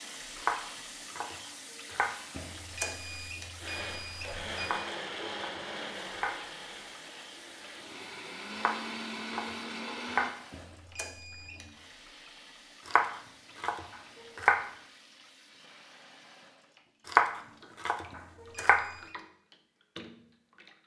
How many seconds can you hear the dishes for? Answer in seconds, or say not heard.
not heard.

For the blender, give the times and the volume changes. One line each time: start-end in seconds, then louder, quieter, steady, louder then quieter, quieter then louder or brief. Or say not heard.
3.5-10.3 quieter then louder.